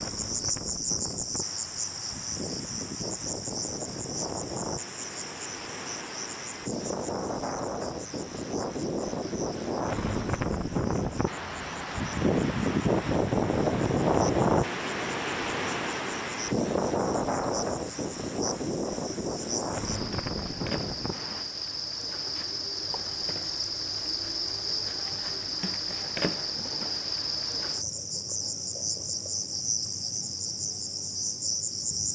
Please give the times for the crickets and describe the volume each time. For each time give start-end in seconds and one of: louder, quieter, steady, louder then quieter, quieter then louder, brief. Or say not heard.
0.0-32.0 quieter then louder.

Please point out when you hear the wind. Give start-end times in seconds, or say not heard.
0.0-21.4.